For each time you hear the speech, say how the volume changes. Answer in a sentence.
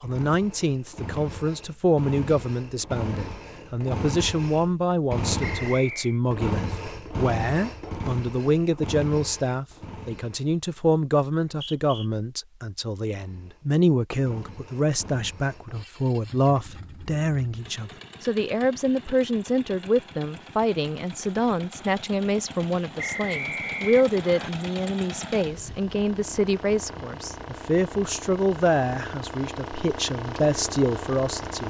The speech can be heard from 0.0 to 31.6 s, at a steady volume.